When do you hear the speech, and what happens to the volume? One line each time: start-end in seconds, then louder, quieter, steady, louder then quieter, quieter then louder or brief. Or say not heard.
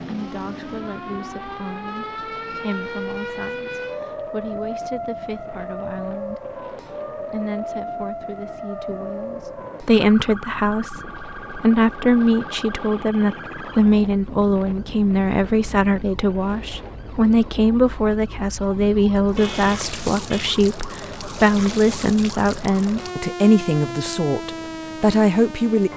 0.0-25.9 louder.